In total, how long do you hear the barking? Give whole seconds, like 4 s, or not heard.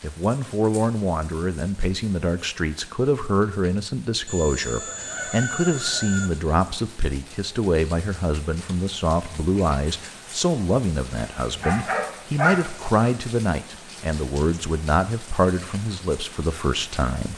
2 s.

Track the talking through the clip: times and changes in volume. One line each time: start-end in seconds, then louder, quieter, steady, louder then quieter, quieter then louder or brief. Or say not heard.
0.0-17.3 steady.